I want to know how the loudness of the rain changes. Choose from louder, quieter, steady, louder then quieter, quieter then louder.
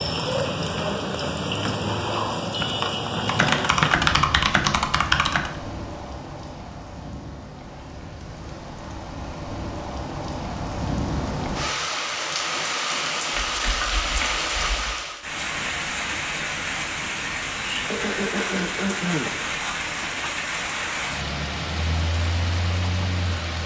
quieter then louder.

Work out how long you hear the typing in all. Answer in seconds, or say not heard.
4 s.